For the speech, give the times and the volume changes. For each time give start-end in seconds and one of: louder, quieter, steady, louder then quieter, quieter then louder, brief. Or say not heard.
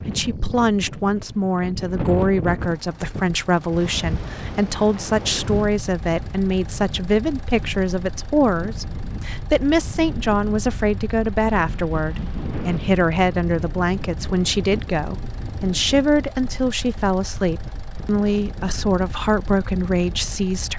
0.1-20.7 steady.